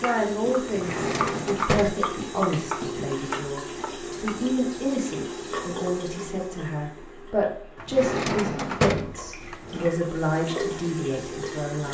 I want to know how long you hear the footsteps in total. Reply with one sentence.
The footsteps can't be heard in this clip.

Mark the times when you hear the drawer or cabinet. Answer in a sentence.
The drawer or cabinet can be heard from 0.7 to 2.0 s and from 7.8 to 9.9 s.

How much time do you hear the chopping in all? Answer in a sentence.
You can hear the chopping for 4 seconds altogether.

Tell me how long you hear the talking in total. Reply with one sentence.
The talking can be heard for 12 seconds in total.